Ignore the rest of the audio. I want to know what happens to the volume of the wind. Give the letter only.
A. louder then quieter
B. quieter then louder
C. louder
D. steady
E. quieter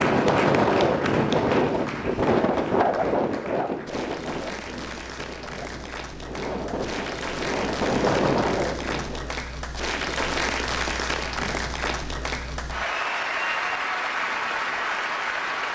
B.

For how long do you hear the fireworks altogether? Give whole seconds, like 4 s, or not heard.
not heard.